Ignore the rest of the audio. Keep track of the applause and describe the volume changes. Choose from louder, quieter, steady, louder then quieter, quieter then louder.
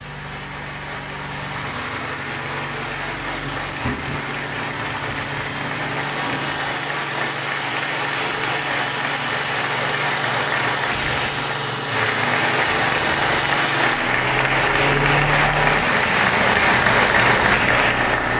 louder.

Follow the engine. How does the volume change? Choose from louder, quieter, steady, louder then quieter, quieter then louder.
louder.